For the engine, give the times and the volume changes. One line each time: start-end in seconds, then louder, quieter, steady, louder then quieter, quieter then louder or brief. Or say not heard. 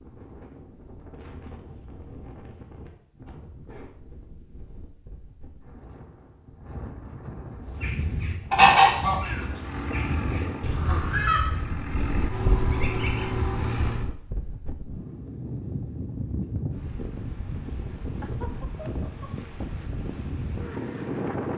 9.5-14.1 quieter then louder.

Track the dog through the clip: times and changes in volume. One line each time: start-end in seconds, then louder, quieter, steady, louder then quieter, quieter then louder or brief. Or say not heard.
not heard.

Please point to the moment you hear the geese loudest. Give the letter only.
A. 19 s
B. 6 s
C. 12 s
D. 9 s
D.